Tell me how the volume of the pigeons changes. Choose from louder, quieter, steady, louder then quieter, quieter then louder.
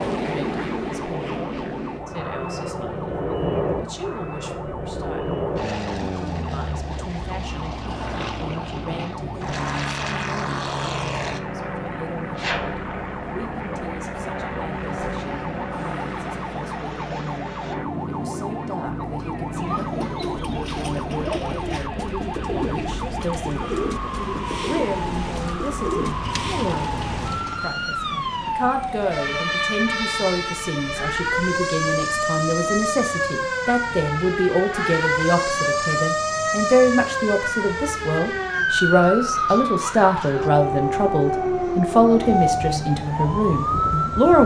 steady.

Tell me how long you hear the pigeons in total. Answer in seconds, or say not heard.
8 s.